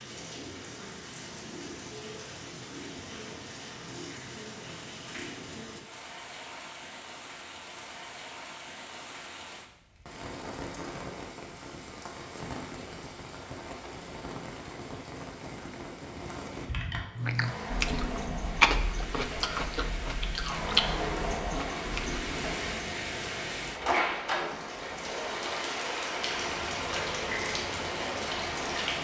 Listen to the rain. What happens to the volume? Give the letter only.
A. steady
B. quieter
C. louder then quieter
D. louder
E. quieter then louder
D.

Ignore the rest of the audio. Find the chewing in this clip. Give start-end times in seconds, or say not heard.
17.1-22.6.